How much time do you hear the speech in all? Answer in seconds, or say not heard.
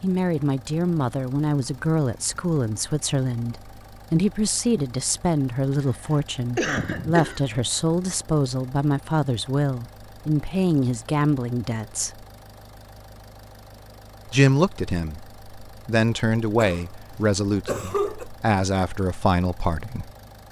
18 s.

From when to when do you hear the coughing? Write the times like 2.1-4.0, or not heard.
6.5-7.4, 16.6-18.2.